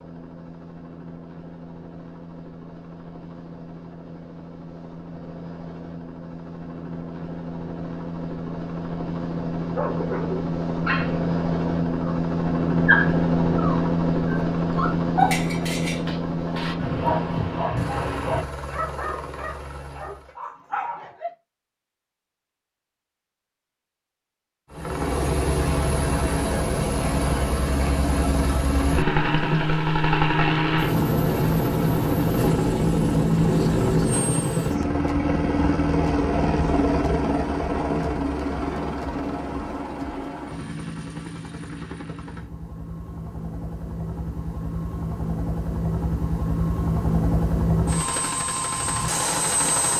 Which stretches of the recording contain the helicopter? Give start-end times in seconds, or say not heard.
0.0-20.4, 24.7-49.9.